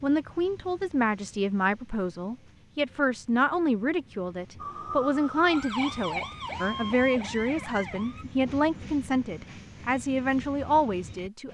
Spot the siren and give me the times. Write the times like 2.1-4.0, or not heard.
4.5-8.2.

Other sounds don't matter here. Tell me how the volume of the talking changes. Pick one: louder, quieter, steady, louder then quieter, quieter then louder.
steady.